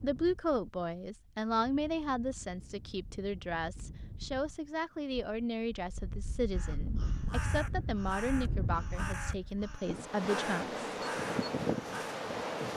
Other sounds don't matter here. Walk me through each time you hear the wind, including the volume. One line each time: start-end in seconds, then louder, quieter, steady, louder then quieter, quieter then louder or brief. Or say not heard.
0.0-12.7 louder.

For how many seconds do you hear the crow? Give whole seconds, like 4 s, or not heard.
6 s.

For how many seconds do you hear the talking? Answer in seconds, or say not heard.
11 s.